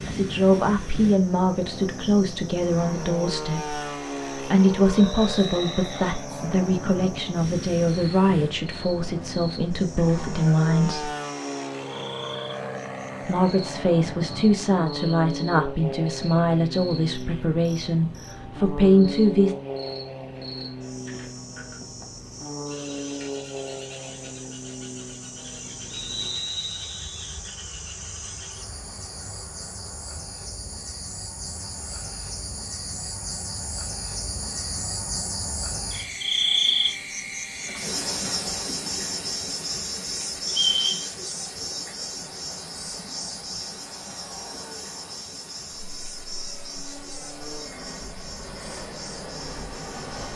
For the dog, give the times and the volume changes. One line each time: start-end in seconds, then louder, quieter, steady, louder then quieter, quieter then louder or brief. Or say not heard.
not heard.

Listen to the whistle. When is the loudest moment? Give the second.
41 s.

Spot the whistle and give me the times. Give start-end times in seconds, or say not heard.
5.0-6.2, 25.9-27.4, 40.5-41.1.